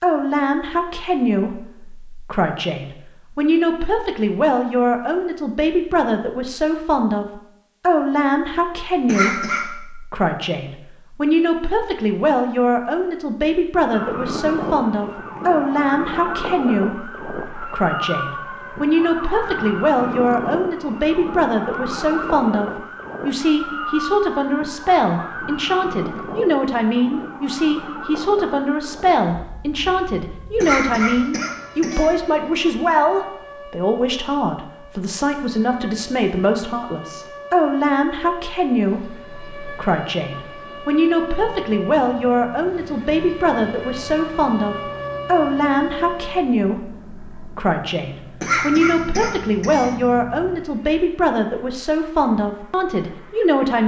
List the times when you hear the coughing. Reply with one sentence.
The coughing can be heard from 9.1 to 9.6 s, from 30.6 to 32.0 s and from 48.4 to 49.9 s.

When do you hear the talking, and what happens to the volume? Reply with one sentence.
You can hear the talking from 0.0 to 53.8 s, at a steady volume.